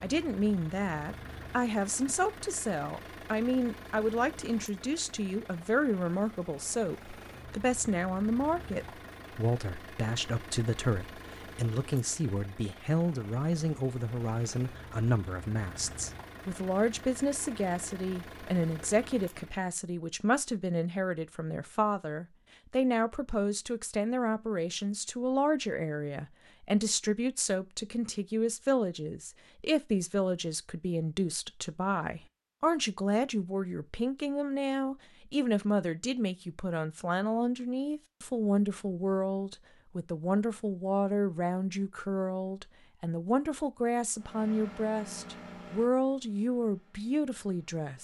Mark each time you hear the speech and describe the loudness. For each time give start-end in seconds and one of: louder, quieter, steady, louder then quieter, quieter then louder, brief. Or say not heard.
0.0-47.9 steady.